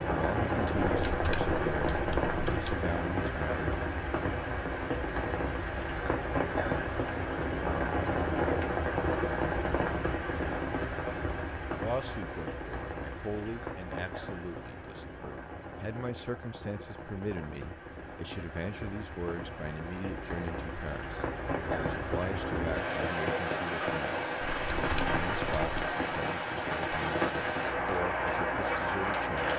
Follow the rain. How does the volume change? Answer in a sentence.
The loudness of the rain goes down, then up.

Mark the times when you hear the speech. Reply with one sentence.
The speech can be heard from 0.0 to 3.8 s and from 11.7 to 29.5 s.